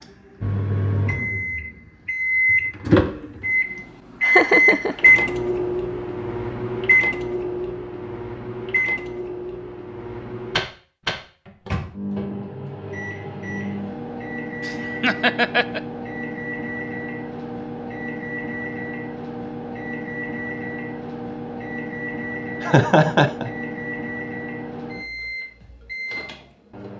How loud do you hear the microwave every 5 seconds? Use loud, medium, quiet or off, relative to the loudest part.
loud, loud, medium, medium, medium, quiet.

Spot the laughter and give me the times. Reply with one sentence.
The laughter can be heard from 4.2 to 5.1 s, from 14.7 to 15.8 s and from 22.6 to 23.5 s.